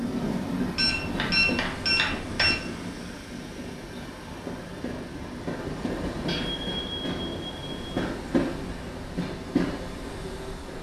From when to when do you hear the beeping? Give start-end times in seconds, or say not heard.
0.8-2.5, 6.2-7.8.